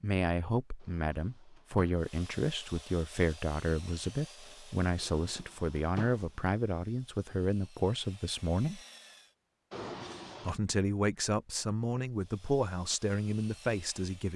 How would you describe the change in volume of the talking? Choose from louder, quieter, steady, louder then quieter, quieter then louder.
steady.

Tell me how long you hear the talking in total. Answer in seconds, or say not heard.
13 s.